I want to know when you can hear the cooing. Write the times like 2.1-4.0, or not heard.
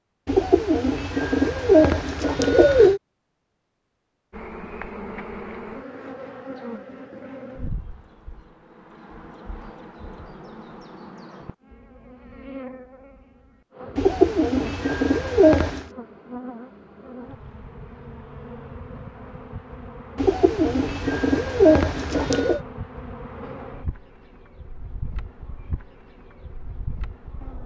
0.2-3.0, 13.9-15.8, 20.1-22.6.